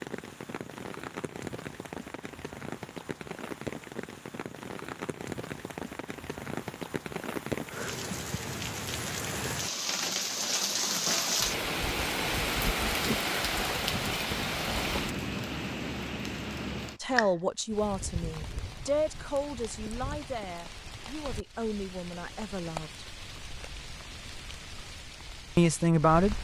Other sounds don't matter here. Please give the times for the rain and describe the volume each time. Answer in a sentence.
The rain can be heard from 0.0 to 26.3 s, getting louder then quieter.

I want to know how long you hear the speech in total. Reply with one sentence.
You can hear the speech for 7 seconds altogether.